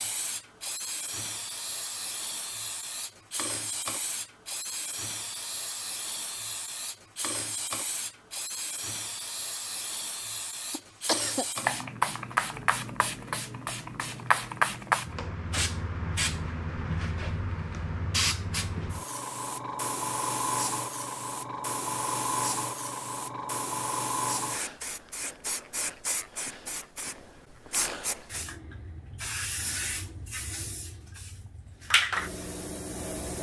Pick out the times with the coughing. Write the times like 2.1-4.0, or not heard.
10.7-11.4.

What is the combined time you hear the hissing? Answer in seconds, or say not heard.
33 s.